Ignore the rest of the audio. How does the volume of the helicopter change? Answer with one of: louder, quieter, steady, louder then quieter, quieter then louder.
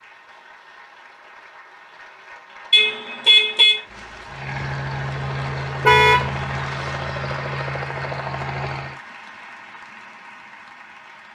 steady.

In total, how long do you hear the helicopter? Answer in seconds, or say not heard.
5 s.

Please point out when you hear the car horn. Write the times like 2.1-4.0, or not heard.
2.7-3.8, 5.8-6.3.